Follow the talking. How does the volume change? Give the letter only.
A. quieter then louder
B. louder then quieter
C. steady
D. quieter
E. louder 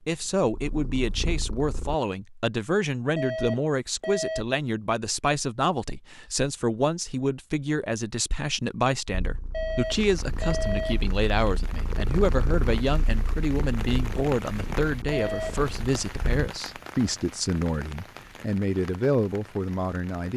C.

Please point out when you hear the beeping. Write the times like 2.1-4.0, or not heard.
3.1-4.5, 9.5-11.1, 15.1-15.6.